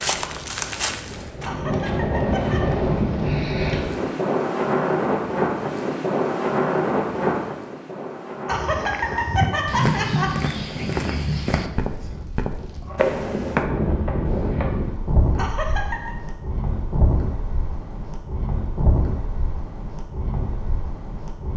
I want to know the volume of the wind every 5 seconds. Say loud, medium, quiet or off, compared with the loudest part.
loud, loud, medium, medium, medium.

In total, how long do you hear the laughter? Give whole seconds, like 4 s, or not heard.
4 s.